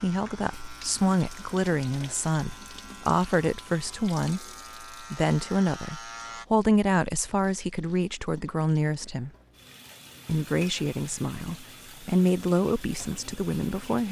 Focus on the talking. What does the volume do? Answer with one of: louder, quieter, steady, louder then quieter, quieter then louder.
steady.